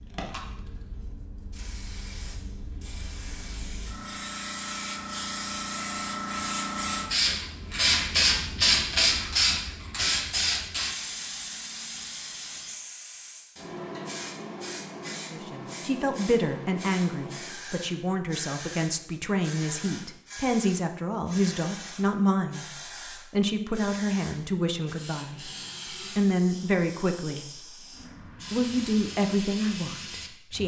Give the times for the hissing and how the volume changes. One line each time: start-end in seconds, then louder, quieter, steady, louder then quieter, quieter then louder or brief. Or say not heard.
0.0-30.6 louder then quieter.